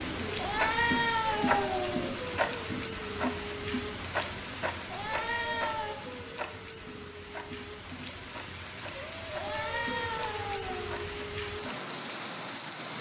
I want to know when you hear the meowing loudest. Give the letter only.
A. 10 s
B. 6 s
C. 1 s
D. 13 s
C.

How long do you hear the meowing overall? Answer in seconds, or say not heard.
5 s.